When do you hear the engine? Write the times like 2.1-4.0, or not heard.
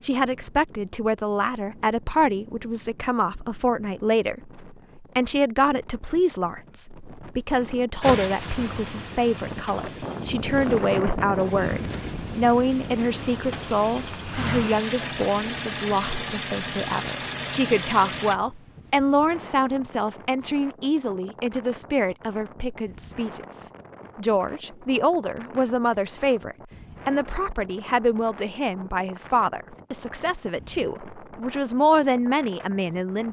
8.0-18.4.